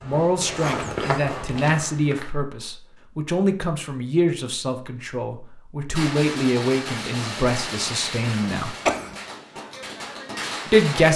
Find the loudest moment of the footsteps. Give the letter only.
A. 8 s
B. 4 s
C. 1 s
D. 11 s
C.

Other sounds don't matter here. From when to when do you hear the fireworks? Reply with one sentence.
You can hear the fireworks from 6.0 to 11.1 s.